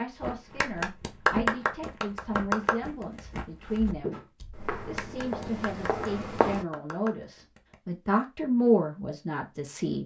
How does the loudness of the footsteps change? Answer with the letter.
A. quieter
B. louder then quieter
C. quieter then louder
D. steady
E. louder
C.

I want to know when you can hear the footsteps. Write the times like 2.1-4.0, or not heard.
0.1-6.7.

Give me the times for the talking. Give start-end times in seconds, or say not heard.
0.0-4.2, 4.8-10.0.